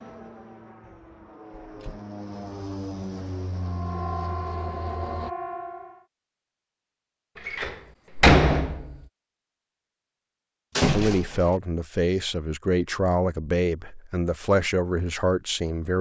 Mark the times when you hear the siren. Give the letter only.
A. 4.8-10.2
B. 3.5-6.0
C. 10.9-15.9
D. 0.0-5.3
B.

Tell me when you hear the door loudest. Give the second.
8 s.